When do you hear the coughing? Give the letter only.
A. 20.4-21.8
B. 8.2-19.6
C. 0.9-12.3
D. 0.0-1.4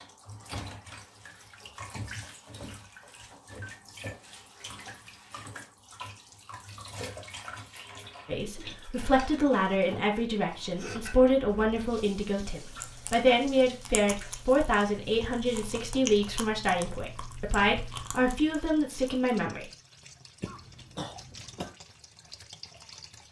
A.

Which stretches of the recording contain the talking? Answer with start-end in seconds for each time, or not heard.
8.2-19.6.